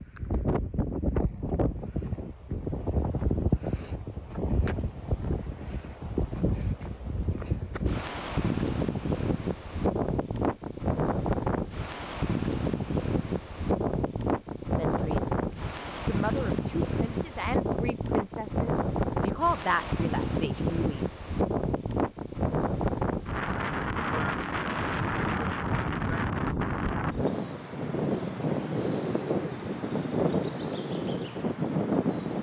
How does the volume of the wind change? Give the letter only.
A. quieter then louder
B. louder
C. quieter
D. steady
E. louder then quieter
D.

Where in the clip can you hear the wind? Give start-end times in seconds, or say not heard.
0.0-32.3.